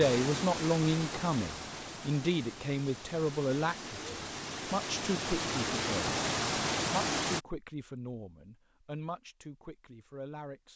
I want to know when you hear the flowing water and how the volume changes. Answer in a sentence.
The flowing water can be heard from 0.0 to 7.4 s, getting quieter then louder.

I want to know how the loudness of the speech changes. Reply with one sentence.
The volume of the speech goes down.